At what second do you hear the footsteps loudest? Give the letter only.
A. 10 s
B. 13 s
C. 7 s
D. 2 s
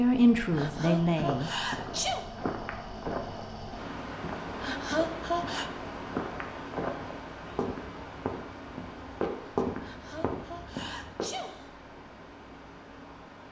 A.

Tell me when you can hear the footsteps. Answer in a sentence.
You can hear the footsteps from 0.5 to 11.3 s.